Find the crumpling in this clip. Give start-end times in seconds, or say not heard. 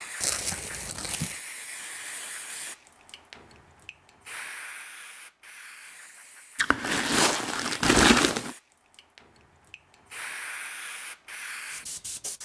0.2-1.4, 6.5-8.6.